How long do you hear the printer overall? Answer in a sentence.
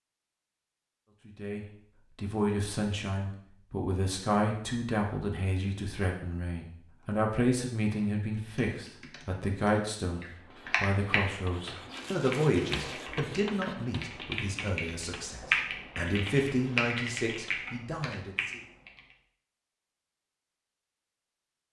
The printer can't be heard in this clip.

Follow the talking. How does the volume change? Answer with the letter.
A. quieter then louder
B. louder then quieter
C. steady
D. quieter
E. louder
C.